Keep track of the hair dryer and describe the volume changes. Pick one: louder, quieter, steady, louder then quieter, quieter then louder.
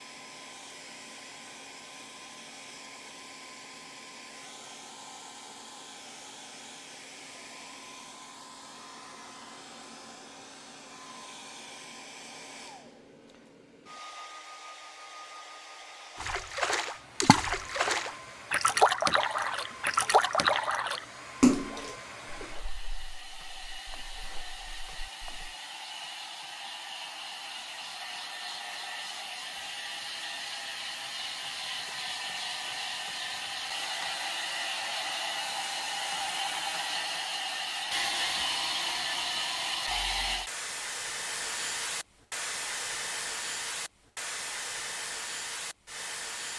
louder.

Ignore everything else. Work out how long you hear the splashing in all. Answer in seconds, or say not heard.
9 s.